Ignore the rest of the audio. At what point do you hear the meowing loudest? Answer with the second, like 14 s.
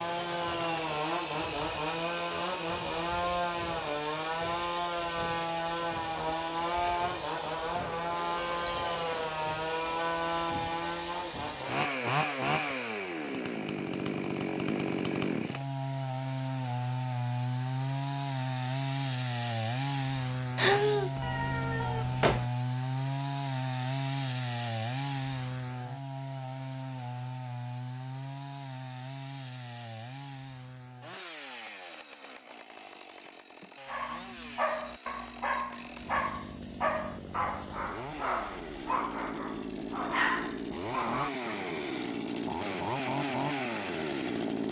21 s.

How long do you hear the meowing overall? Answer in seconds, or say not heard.
2 s.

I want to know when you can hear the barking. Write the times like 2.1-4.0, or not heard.
33.9-41.5.